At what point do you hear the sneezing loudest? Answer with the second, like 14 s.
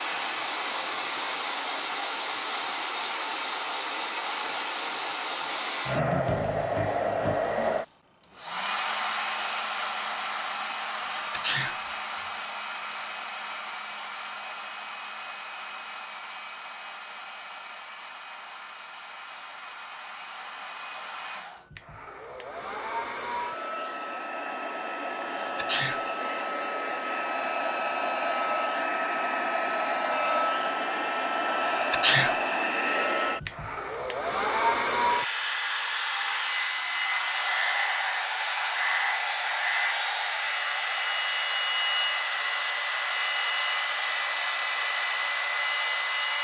32 s.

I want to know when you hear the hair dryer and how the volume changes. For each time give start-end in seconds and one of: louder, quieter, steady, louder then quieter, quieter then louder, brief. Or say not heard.
0.0-46.4 quieter then louder.